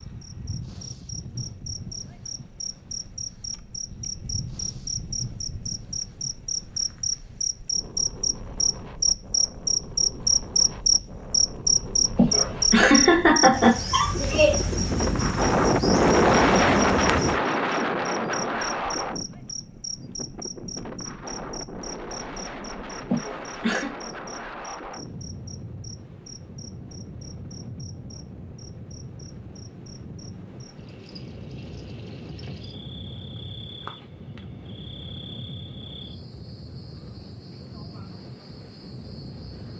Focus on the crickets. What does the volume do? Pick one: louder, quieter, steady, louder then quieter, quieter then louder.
louder then quieter.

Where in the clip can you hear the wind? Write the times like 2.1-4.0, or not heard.
0.0-39.7.